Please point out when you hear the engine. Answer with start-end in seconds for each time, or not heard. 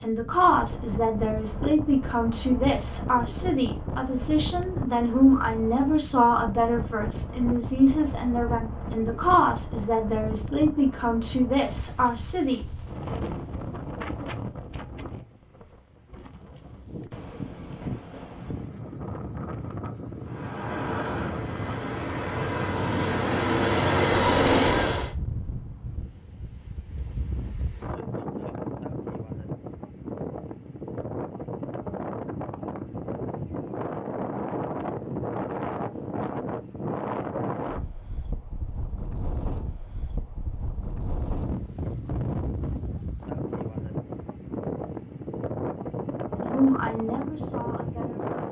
20.2-25.1.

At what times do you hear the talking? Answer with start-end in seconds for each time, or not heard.
0.0-12.6, 46.4-48.4.